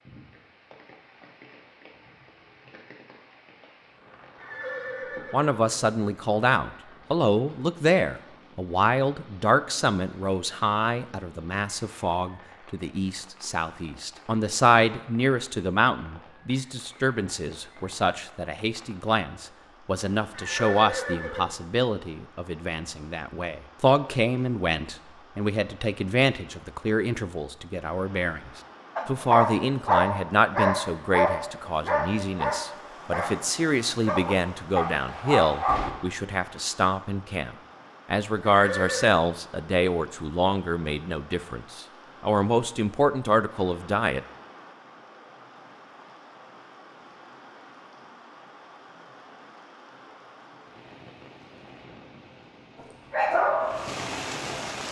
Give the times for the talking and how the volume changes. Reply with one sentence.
You can hear the talking from 5.3 to 44.2 s, at a steady volume.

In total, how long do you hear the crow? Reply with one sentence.
You can't hear the crow here.